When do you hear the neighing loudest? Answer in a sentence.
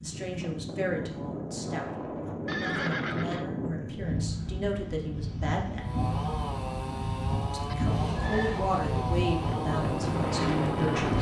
The volume of the neighing peaks at 3 seconds.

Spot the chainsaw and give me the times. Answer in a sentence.
You can hear the chainsaw from 5.8 to 11.1 s.